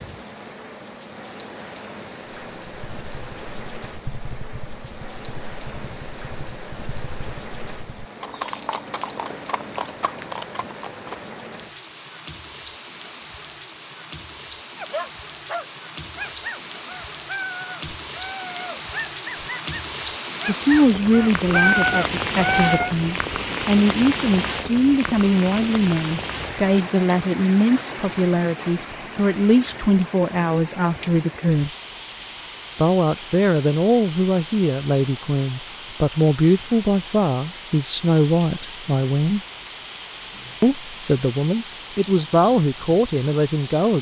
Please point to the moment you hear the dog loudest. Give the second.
22 s.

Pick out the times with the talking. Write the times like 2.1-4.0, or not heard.
20.4-31.7, 32.8-39.4, 40.6-43.9.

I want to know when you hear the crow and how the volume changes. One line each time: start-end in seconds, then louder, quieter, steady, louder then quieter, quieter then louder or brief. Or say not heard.
not heard.